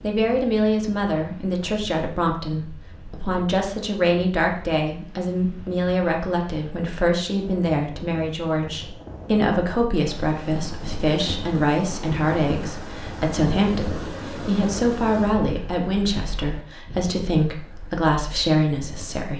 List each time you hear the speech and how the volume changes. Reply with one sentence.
The speech can be heard from 0.0 to 19.3 s, at a steady volume.